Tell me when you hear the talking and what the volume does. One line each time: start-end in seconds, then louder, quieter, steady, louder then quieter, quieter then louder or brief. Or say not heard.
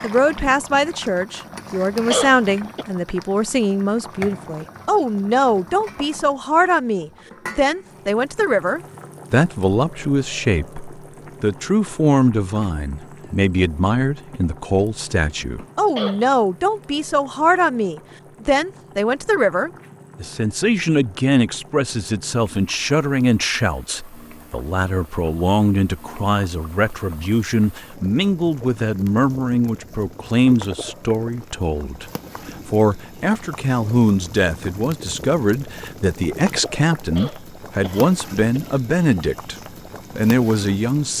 0.0-39.5 steady
40.1-41.1 brief.